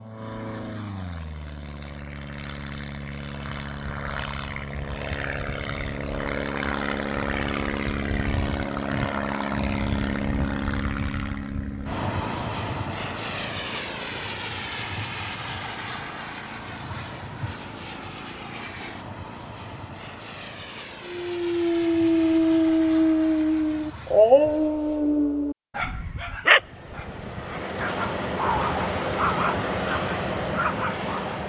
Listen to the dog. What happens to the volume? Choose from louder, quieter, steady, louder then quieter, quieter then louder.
quieter.